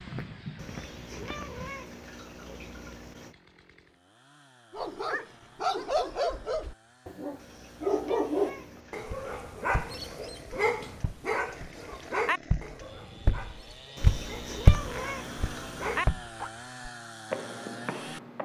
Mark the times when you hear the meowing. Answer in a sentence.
The meowing can be heard from 0.6 to 3.4 s, from 7.3 to 9.4 s and from 13.9 to 16.1 s.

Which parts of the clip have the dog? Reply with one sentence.
You can hear the dog from 4.7 to 16.5 s.